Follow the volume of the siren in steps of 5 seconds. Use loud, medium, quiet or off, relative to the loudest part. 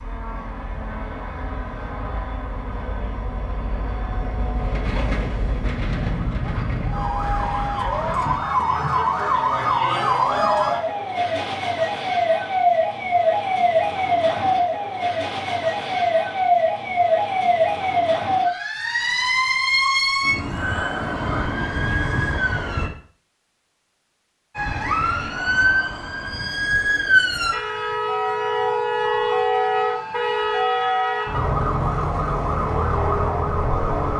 off, loud, loud, loud, loud, loud, loud.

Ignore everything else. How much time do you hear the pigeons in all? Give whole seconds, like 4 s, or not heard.
not heard.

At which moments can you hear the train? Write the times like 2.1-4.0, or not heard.
0.0-8.3.